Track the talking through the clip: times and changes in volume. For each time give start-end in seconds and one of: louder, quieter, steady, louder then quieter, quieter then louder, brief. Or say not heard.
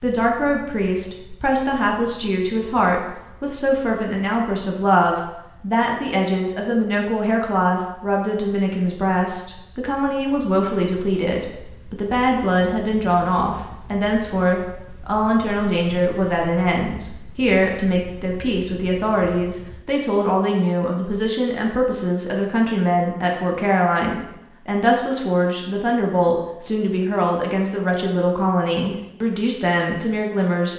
0.0-30.7 steady.